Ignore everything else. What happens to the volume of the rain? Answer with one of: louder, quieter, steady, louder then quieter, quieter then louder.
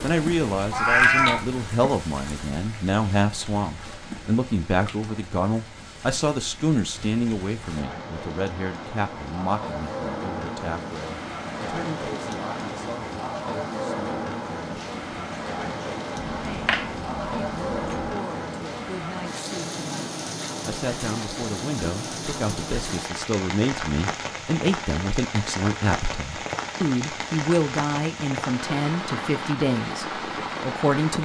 louder.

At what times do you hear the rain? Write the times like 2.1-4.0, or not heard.
0.0-31.2.